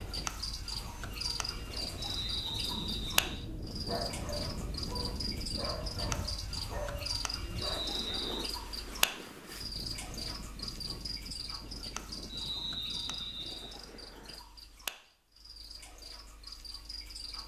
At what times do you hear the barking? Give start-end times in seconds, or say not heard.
3.2-8.7.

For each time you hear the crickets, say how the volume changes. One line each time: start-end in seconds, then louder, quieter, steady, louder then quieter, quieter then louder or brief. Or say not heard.
0.0-17.4 quieter.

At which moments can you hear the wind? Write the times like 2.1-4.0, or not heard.
0.0-14.4.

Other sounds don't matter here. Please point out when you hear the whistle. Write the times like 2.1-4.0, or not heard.
1.9-3.2, 7.5-8.5, 12.2-13.8.